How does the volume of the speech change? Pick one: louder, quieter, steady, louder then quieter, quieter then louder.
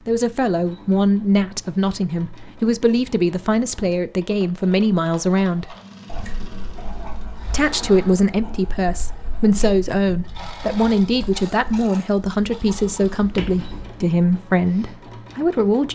steady.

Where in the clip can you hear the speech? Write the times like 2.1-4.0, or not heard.
0.1-5.8, 7.5-15.9.